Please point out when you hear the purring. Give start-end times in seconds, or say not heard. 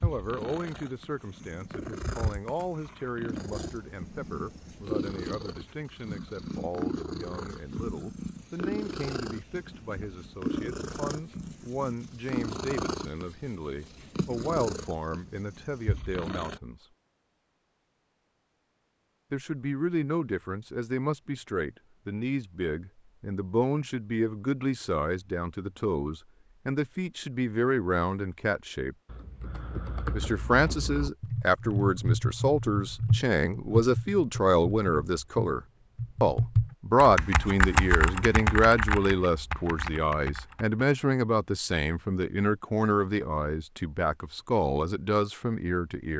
0.0-16.6.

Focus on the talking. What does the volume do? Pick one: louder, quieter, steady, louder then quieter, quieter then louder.
louder.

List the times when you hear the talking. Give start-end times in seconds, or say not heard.
0.0-16.9, 19.3-28.9, 30.1-46.1.